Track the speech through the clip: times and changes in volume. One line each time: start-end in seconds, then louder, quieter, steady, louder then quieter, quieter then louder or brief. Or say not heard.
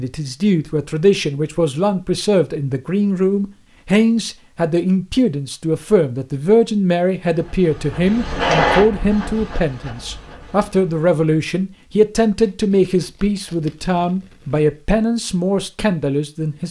0.0-16.6 steady.